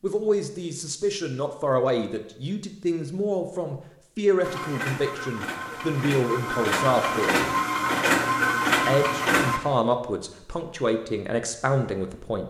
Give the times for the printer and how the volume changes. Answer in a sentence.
The printer can be heard from 4.4 to 9.6 s, getting louder.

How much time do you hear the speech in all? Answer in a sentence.
The speech can be heard for 11 seconds in total.